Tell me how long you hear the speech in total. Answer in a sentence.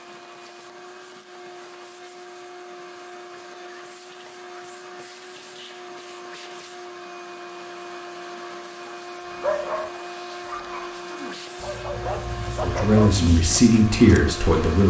You can hear the speech for 2 seconds altogether.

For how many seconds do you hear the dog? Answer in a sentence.
You can hear the dog for 5 seconds altogether.